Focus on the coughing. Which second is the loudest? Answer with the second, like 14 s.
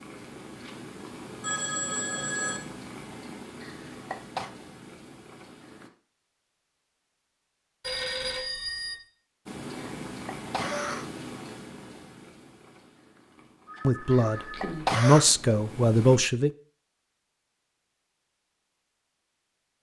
15 s.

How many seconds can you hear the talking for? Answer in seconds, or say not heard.
3 s.